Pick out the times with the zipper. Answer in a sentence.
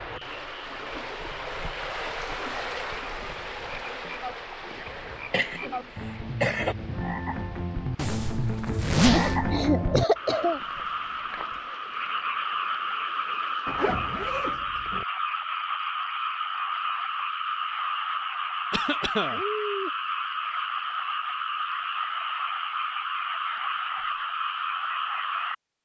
The zipper can be heard from 8.0 to 9.6 s and from 13.7 to 15.1 s.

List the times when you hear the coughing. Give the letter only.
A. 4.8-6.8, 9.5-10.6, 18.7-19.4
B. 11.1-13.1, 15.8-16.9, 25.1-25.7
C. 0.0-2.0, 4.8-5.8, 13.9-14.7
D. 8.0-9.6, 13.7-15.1
A.